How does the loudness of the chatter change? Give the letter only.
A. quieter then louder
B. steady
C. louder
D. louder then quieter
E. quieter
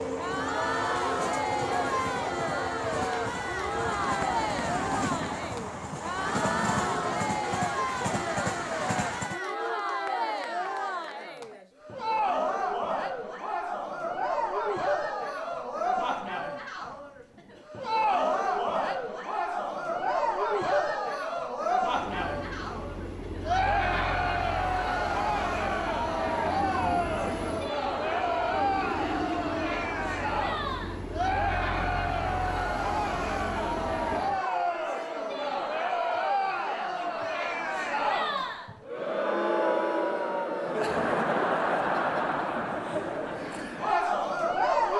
B.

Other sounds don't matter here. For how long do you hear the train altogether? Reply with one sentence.
The train can be heard for 22 seconds in total.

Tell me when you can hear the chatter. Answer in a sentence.
The chatter can be heard from 0.0 to 44.9 s.